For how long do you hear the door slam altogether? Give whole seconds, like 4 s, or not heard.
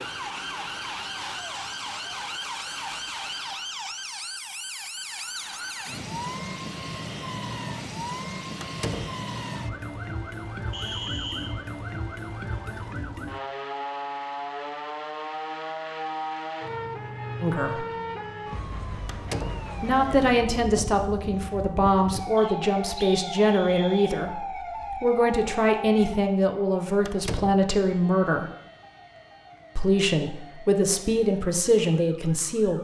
2 s.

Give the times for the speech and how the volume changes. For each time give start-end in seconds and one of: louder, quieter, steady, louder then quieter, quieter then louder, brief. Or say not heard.
17.4-17.9 brief
19.8-28.5 steady
29.8-32.7 brief.